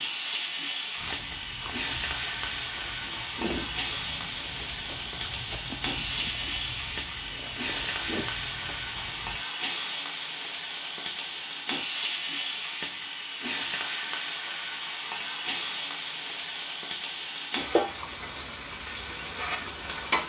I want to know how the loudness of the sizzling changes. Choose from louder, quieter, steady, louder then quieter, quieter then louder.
steady.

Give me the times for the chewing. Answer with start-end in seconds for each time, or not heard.
0.9-9.4.